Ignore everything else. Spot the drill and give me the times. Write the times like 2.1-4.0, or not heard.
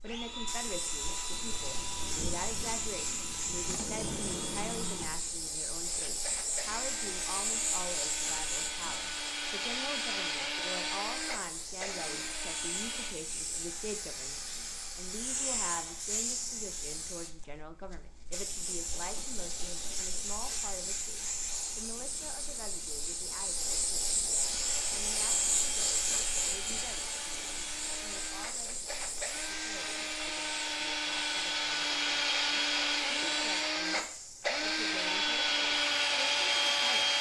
0.0-13.2, 24.4-37.1.